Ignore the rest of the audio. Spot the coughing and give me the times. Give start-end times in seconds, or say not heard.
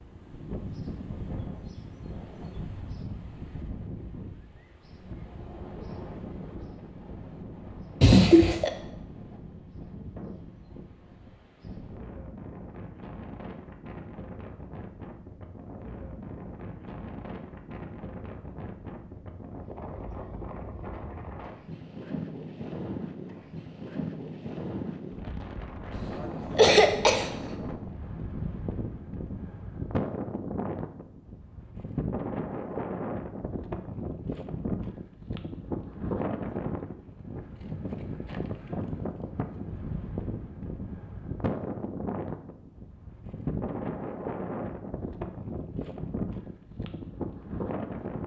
8.0-8.7, 25.9-27.3.